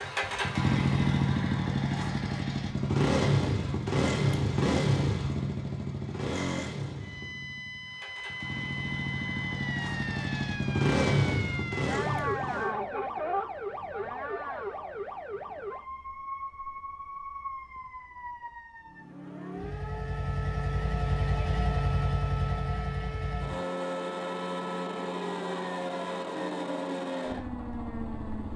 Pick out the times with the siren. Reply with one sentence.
The siren can be heard from 7.0 to 28.5 s.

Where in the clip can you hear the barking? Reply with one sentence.
The barking can't be heard in this clip.